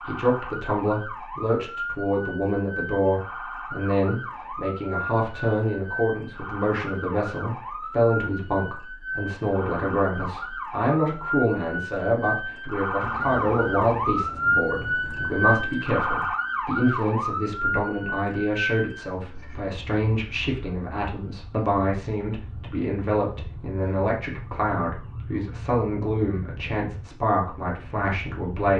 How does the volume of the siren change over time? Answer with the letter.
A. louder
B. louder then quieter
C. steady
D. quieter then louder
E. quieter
B.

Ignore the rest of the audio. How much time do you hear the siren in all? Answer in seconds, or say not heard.
29 s.